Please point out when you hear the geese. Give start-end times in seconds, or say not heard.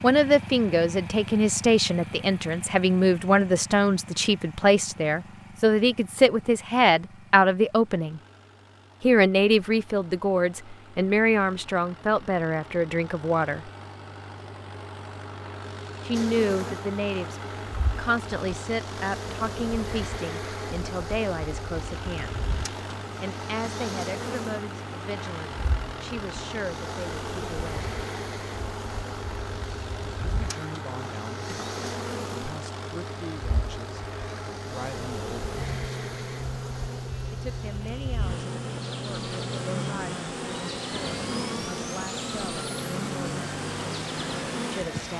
not heard.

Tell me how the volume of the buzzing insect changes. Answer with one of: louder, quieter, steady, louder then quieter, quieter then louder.
louder.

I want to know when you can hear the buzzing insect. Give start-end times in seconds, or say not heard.
16.1-45.1.